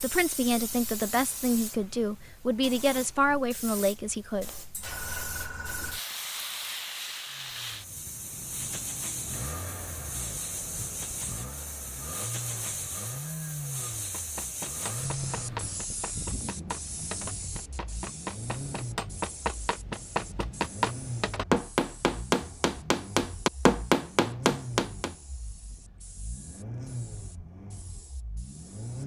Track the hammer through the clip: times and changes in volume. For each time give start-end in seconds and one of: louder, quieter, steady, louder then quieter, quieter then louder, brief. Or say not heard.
14.1-25.1 louder.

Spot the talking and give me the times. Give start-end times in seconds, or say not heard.
0.0-4.5.